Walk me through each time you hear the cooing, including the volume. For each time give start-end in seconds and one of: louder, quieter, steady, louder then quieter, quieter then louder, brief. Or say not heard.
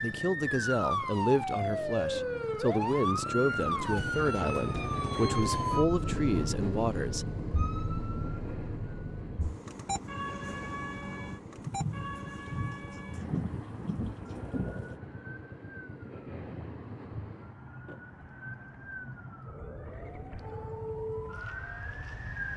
not heard.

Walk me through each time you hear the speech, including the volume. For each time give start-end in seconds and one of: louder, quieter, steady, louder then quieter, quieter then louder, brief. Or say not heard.
0.0-7.2 steady.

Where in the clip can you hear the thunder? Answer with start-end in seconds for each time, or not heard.
11.6-14.9.